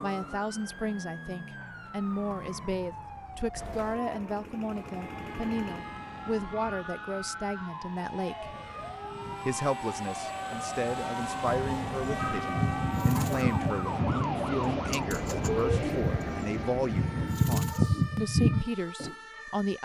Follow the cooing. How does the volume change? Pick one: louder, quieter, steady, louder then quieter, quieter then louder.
louder.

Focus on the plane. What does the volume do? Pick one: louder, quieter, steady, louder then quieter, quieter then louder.
louder.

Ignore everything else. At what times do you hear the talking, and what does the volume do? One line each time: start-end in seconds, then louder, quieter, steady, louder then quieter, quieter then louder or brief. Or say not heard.
0.0-8.6 steady
9.4-19.8 steady.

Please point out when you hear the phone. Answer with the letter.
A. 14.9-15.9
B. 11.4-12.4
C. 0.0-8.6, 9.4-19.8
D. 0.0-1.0
B.